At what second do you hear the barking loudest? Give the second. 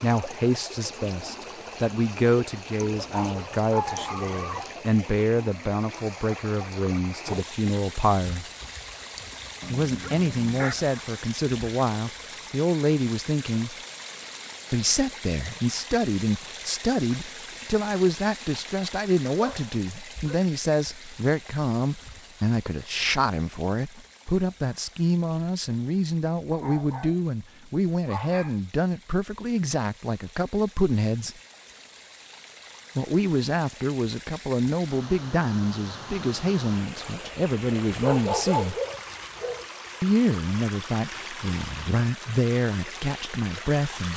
38 s.